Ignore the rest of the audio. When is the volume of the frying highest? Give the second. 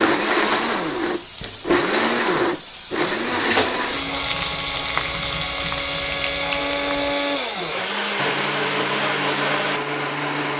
4 s.